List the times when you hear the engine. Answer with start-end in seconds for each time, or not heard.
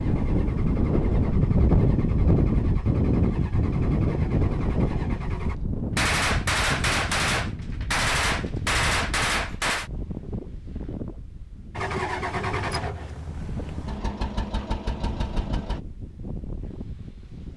0.0-5.6, 11.8-15.8.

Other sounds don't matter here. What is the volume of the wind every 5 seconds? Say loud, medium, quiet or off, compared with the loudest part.
loud, medium, quiet, quiet.